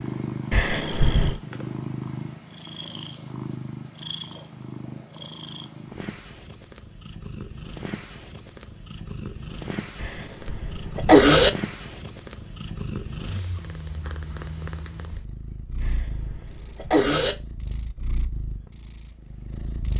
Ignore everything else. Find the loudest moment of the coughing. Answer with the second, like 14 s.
11 s.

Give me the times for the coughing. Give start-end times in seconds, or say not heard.
0.5-1.4, 10.0-11.5, 15.8-17.4.